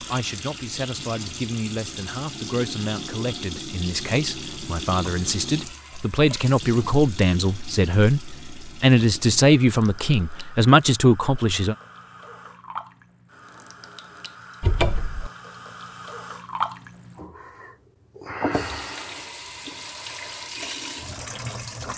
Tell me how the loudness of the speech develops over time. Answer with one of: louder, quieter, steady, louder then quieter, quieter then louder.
louder.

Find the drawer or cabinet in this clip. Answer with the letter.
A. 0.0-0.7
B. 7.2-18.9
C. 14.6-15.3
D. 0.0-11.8
C.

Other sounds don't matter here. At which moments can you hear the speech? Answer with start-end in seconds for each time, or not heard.
0.0-11.8.